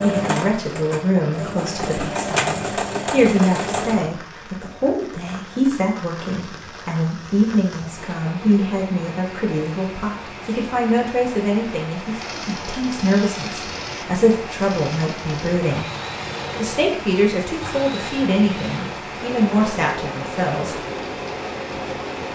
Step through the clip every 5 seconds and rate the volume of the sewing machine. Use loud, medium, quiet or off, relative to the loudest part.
loud, off, medium, medium, medium.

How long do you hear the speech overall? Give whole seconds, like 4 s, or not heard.
20 s.